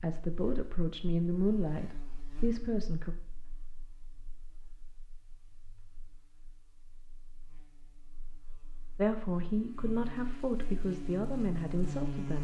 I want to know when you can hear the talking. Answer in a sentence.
The talking can be heard from 0.0 to 3.1 s and from 8.9 to 12.3 s.